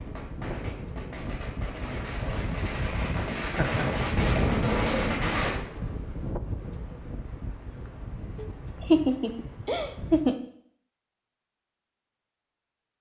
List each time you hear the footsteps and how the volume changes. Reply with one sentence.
The footsteps can't be heard in this clip.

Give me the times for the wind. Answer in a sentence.
The wind can be heard from 0.0 to 10.3 s.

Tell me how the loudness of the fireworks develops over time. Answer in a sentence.
The volume of the fireworks goes up.